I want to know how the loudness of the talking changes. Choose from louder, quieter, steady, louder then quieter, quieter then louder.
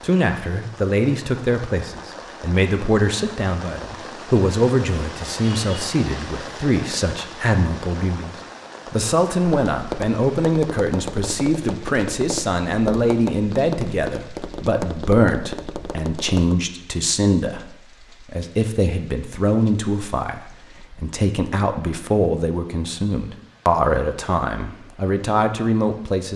steady.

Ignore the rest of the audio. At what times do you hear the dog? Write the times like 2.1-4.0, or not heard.
not heard.